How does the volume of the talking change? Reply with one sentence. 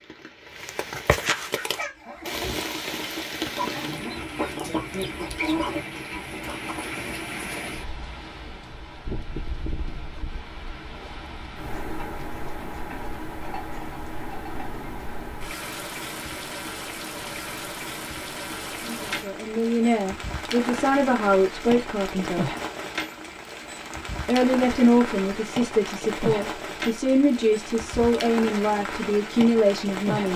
The volume of the talking stays about the same.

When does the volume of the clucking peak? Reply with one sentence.
The loudest moment of the clucking is at 6 seconds.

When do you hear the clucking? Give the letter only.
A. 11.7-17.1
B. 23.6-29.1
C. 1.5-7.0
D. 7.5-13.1
C.